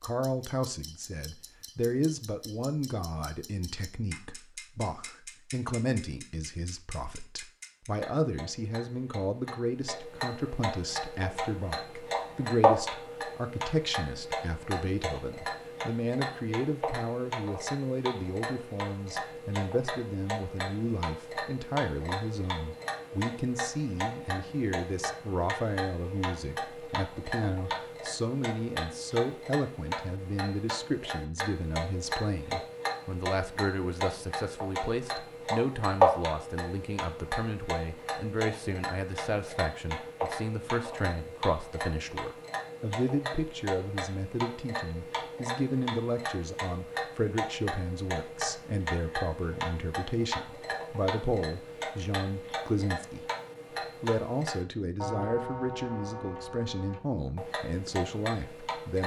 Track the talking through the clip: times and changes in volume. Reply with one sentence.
The talking can be heard from 0.0 to 53.2 s, at a steady volume; and from 54.0 to 59.0 s, at a steady volume.